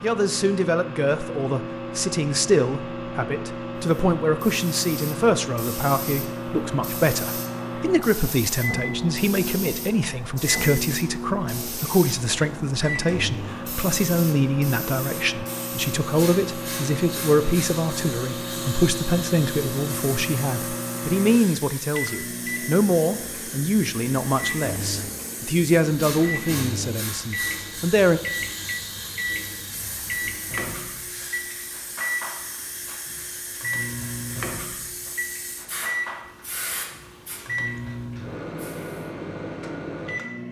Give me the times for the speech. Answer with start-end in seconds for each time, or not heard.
0.0-28.2.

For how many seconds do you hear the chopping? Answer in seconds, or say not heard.
not heard.